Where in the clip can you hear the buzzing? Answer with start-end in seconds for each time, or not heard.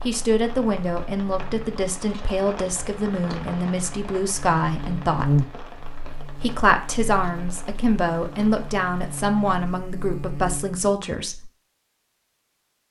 0.0-10.9.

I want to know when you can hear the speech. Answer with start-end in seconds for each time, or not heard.
0.1-5.5, 6.4-11.5.